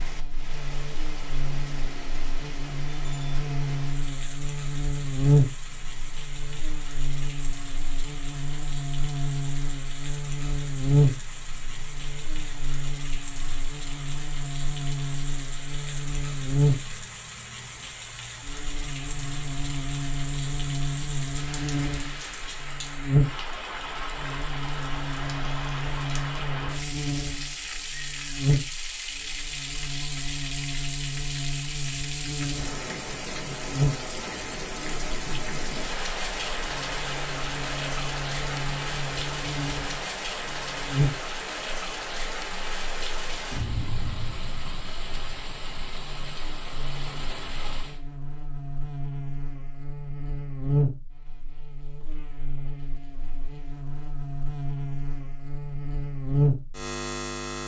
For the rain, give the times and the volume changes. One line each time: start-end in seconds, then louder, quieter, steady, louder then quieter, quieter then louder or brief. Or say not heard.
0.0-48.0 louder.